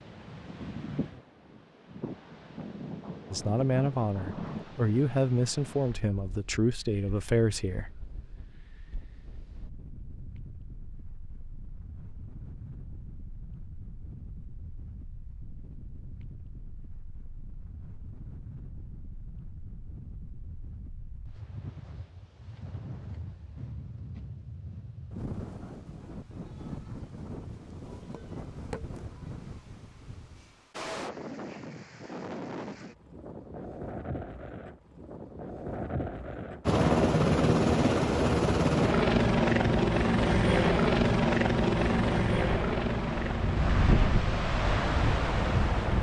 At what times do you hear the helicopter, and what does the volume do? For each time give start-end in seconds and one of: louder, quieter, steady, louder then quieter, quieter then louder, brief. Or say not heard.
36.6-45.9 quieter.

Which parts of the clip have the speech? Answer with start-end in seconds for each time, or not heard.
3.3-8.1.